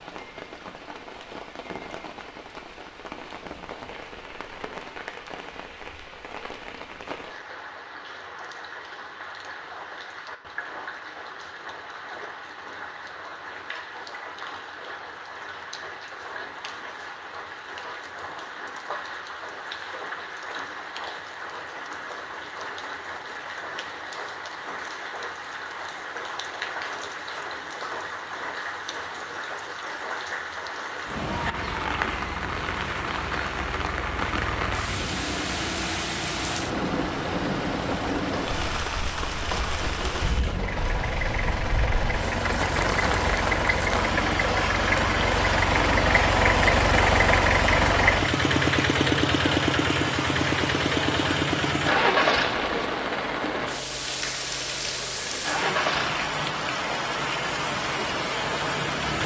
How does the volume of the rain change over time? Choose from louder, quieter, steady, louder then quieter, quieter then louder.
louder.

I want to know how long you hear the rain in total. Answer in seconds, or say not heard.
59 s.